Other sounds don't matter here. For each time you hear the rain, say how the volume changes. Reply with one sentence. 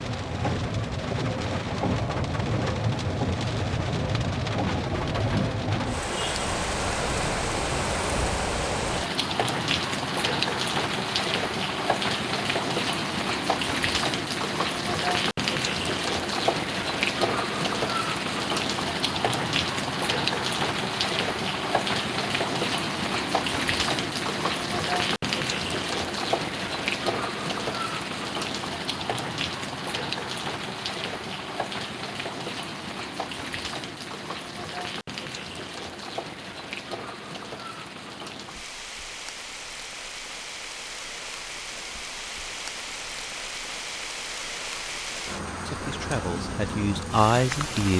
The rain can be heard from 0.0 to 47.9 s, getting quieter.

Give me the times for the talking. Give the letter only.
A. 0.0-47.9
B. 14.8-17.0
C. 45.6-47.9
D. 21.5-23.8
C.